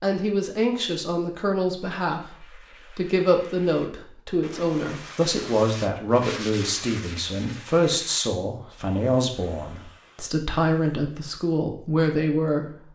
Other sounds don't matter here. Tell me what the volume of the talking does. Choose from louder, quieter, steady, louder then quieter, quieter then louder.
steady.